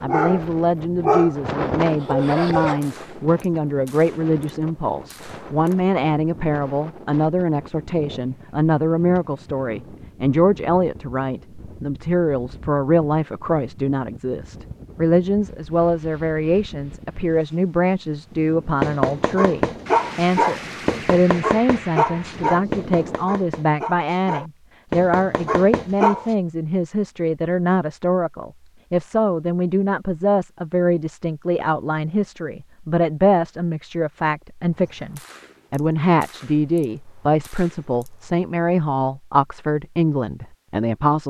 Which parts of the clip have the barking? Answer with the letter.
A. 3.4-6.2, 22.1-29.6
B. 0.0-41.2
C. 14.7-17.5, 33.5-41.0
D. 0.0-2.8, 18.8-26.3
D.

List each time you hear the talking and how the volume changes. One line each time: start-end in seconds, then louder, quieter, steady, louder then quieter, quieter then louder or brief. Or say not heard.
0.0-41.2 steady.